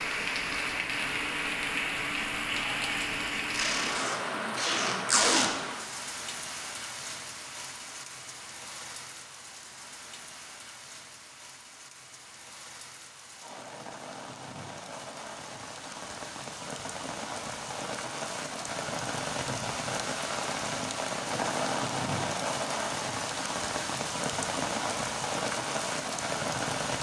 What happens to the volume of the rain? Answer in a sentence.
The loudness of the rain goes down, then up.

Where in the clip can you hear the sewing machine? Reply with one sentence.
You can't hear the sewing machine here.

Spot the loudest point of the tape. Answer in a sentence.
The volume of the tape peaks at 5 seconds.